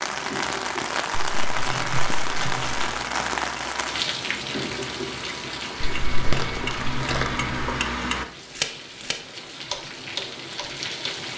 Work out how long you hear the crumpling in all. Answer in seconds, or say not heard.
4 s.